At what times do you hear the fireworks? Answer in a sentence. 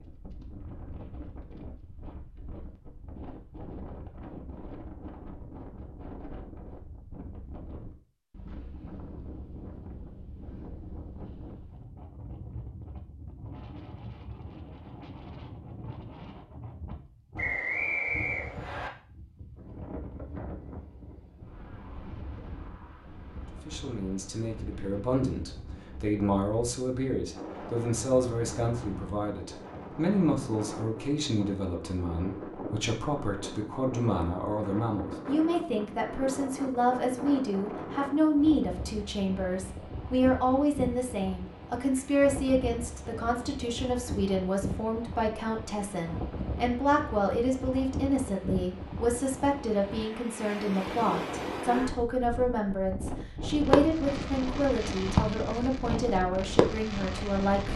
The fireworks can be heard from 53.5 to 57.7 s.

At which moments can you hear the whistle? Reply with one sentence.
The whistle can be heard from 17.4 to 18.9 s.